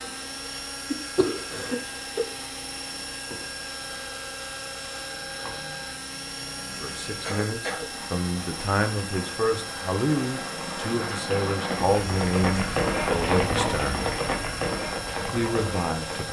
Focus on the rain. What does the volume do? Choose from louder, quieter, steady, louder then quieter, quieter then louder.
louder.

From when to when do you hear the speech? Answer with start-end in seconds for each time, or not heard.
6.8-14.1, 15.2-16.2.